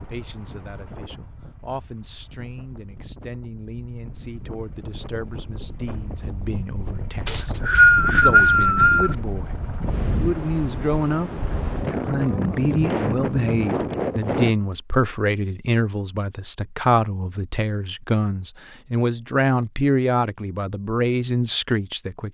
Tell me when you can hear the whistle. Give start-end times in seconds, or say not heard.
7.2-9.2.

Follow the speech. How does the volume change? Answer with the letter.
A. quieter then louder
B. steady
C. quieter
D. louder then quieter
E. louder
E.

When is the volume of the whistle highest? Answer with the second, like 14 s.
8 s.